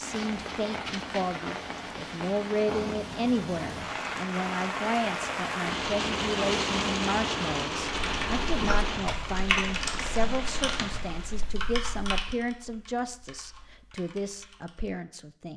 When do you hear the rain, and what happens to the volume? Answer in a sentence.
You can hear the rain from 0.0 to 11.6 s, getting louder then quieter.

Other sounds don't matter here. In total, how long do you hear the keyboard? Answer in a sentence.
The keyboard can be heard for 7 seconds in total.